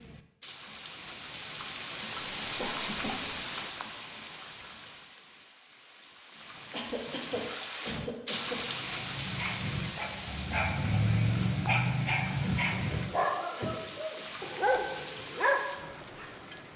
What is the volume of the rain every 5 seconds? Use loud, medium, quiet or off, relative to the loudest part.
loud, loud, medium, medium.